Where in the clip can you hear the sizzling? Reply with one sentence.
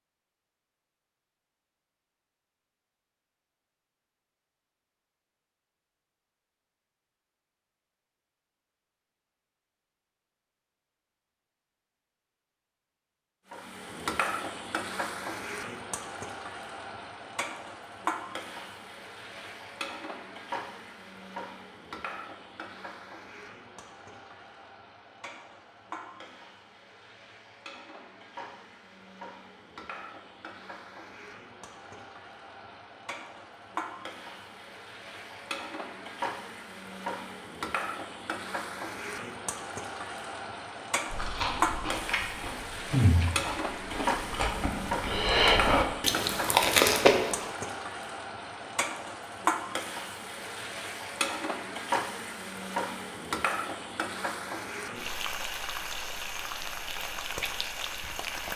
You can hear the sizzling from 13.5 to 58.5 s.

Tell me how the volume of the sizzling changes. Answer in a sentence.
The loudness of the sizzling goes down, then up.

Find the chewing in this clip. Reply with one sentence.
The chewing can be heard from 41.1 to 47.5 s.